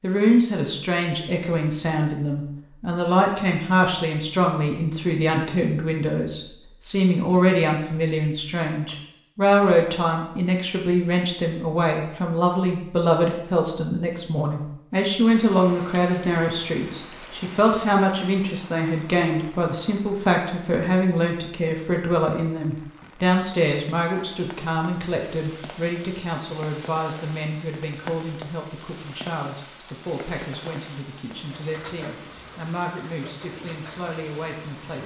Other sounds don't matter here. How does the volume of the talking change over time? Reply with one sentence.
The volume of the talking goes down.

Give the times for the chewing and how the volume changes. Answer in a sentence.
The chewing can't be heard in this clip.